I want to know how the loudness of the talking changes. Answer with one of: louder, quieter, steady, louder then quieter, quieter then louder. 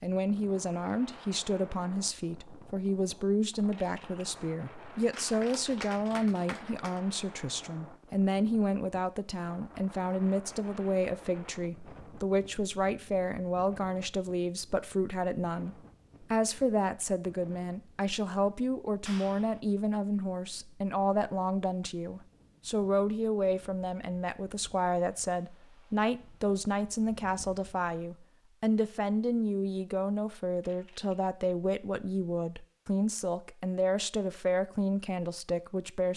steady.